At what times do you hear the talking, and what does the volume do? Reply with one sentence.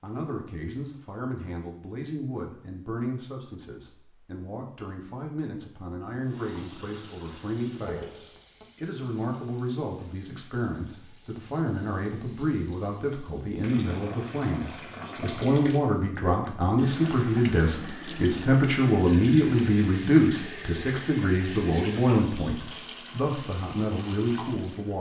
You can hear the talking from 0.0 to 24.9 s, getting louder.